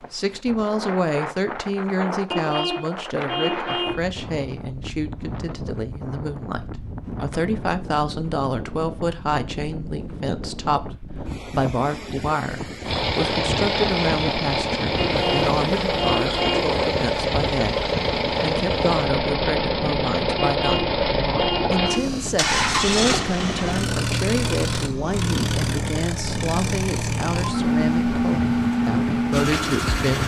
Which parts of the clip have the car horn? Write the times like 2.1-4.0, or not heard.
2.3-4.0, 15.1-16.7, 20.4-22.1.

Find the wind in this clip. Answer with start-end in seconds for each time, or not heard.
0.0-30.2.